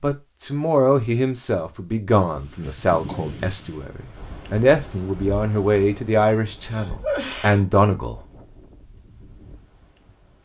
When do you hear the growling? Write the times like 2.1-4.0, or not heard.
not heard.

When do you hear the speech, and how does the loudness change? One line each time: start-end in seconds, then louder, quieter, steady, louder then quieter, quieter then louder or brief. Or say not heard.
0.0-8.2 steady.